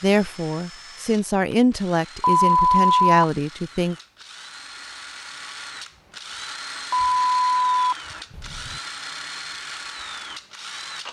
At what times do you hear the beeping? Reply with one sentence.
You can hear the beeping from 2.2 to 3.2 s and from 6.9 to 8.8 s.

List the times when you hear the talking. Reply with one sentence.
You can hear the talking from 0.0 to 4.0 s.